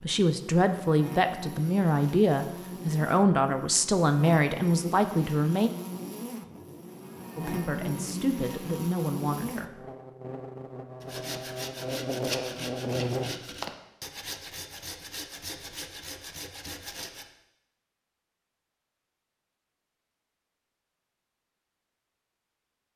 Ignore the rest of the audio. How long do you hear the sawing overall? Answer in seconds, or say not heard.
6 s.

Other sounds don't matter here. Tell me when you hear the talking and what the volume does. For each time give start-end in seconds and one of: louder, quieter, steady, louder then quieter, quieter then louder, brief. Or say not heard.
0.0-5.7 steady
7.3-9.7 brief.